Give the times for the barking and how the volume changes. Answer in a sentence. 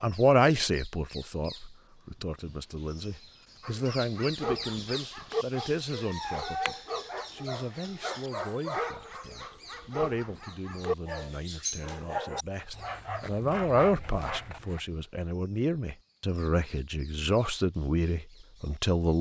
The barking can be heard from 3.6 to 14.8 s, at a steady volume.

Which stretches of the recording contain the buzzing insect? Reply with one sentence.
The buzzing insect can't be heard in this clip.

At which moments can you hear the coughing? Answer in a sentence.
The coughing can't be heard in this clip.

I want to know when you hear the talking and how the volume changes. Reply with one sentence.
The talking can be heard from 0.0 to 19.1 s, getting quieter then louder.